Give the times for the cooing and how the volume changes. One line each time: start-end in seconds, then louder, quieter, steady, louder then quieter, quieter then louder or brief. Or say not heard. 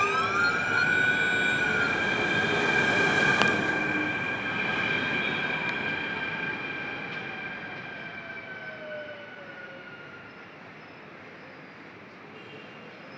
not heard.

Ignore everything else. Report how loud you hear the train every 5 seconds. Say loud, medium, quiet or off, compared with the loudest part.
loud, medium, quiet.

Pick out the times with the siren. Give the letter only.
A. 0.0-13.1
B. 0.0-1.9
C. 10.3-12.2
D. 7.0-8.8
B.